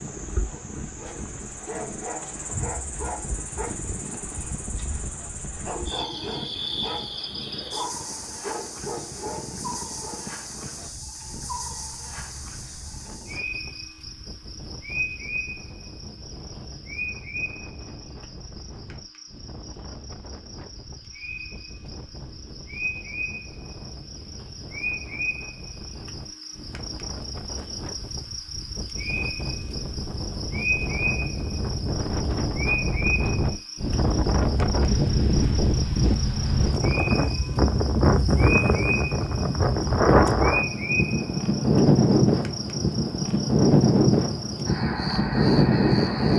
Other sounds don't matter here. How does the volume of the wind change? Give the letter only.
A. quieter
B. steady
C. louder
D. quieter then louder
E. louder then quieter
C.